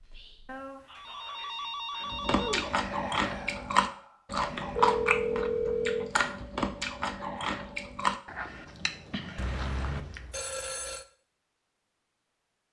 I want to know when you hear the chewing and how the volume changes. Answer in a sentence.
You can hear the chewing from 2.1 to 10.2 s, getting quieter.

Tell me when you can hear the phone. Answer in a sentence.
You can hear the phone from 0.5 to 2.8 s, from 4.5 to 6.1 s and from 9.3 to 11.1 s.